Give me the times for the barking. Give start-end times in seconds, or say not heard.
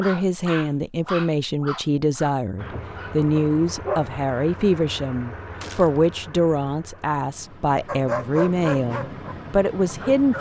0.0-4.1, 7.8-10.3.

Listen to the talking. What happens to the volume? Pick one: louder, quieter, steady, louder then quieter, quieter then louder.
steady.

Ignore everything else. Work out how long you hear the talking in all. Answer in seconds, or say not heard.
10 s.